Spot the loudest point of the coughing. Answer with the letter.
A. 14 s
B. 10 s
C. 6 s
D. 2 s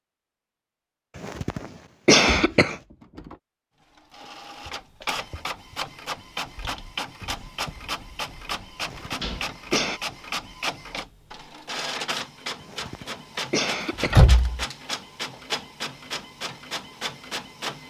D.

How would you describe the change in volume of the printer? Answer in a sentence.
The loudness of the printer stays about the same.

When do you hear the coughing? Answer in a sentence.
You can hear the coughing from 1.1 to 2.8 s, from 8.8 to 10.0 s and from 12.6 to 14.2 s.